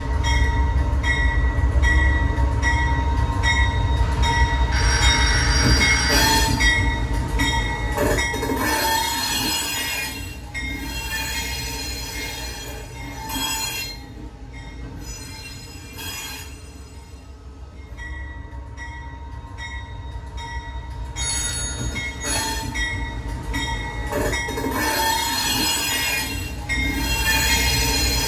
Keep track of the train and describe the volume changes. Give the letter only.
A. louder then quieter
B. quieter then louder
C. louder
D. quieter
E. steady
B.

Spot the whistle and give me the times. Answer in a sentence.
You can't hear the whistle here.